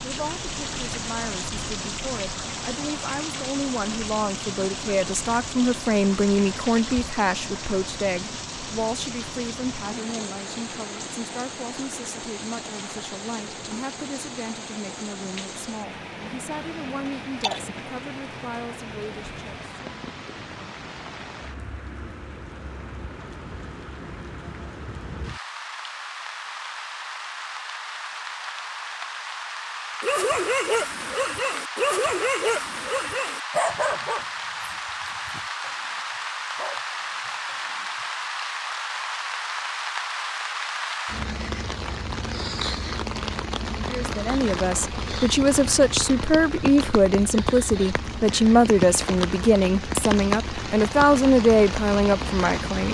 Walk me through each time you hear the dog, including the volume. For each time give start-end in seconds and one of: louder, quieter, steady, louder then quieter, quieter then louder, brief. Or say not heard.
30.0-37.9 quieter then louder.